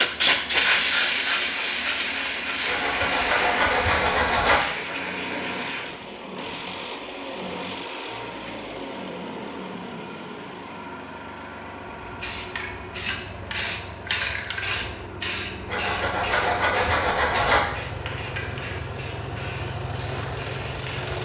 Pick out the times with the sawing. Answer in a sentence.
You can hear the sawing from 2.6 to 4.6 s and from 15.7 to 17.6 s.